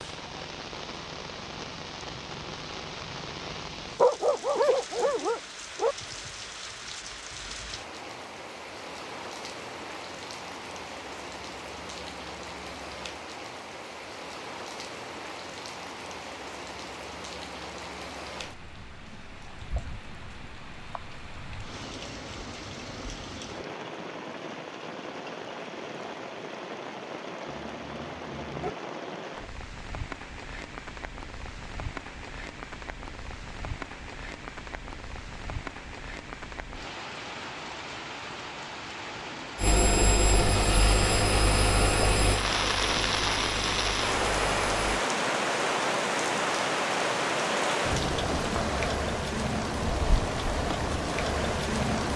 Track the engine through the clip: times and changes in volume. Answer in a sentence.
The engine can be heard from 39.5 to 45.0 s, getting quieter.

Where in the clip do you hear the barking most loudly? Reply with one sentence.
The loudest moment of the barking is at 4 seconds.